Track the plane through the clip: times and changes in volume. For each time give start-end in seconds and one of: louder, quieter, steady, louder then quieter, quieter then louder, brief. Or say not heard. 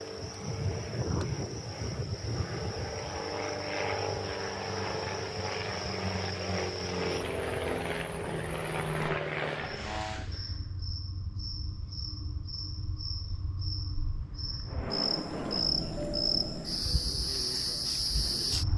0.0-10.2 steady
14.7-18.7 quieter.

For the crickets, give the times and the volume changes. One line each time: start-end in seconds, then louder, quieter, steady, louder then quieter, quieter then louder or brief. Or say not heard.
0.0-18.7 louder.